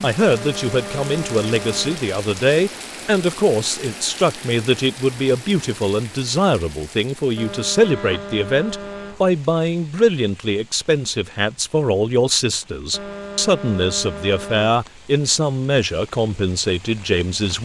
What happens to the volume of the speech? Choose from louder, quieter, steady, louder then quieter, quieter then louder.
steady.